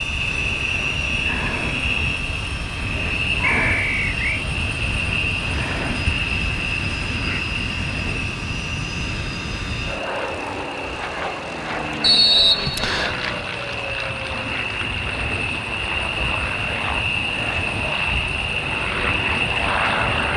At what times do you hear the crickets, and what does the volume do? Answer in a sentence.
You can hear the crickets from 0.0 to 20.3 s, getting quieter then louder.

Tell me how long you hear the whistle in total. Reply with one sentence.
The whistle can be heard for 2 seconds in total.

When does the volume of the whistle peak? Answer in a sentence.
The loudest moment of the whistle is at 12 seconds.